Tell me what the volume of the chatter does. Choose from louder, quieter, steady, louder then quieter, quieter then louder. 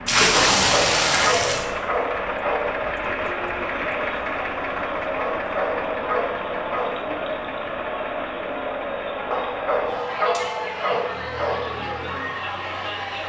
steady.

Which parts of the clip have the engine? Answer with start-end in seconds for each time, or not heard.
0.0-13.2.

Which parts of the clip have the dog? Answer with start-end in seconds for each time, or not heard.
0.6-2.8, 5.2-7.0, 9.3-11.7.